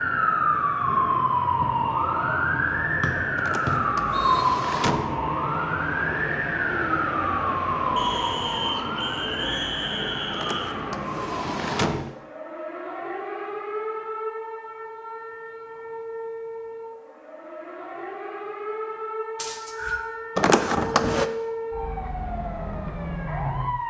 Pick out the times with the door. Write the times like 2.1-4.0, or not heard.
3.4-5.2, 10.3-12.2, 20.4-21.2.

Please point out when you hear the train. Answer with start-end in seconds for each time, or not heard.
not heard.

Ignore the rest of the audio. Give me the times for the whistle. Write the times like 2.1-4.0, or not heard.
3.0-4.5, 8.0-10.8, 19.4-20.0.